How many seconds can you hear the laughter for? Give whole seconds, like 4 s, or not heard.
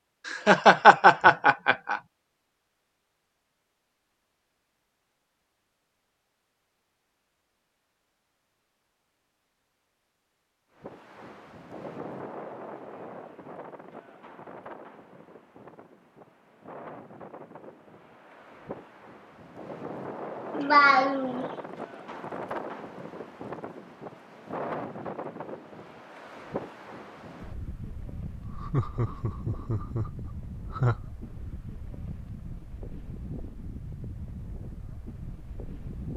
5 s.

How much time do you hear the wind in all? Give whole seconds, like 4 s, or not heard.
25 s.